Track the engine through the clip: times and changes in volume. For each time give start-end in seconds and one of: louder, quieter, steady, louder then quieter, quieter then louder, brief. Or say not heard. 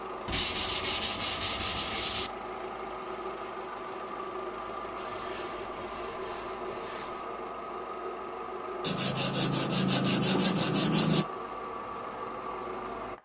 0.0-13.2 steady.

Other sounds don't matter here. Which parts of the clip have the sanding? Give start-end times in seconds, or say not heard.
0.2-2.3, 5.0-7.3, 8.8-11.2.